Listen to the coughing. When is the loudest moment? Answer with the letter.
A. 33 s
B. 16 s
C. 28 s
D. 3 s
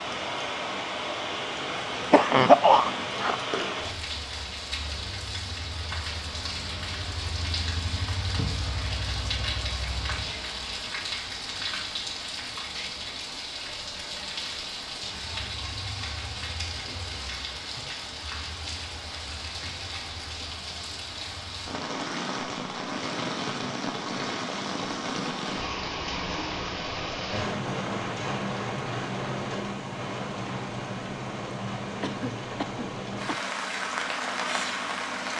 D.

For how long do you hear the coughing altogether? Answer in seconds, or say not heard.
3 s.